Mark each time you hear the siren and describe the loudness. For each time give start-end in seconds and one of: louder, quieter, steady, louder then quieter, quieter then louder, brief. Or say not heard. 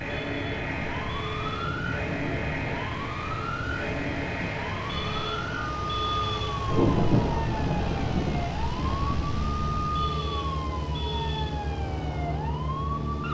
0.0-13.2 steady.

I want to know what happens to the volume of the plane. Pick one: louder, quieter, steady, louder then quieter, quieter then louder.
steady.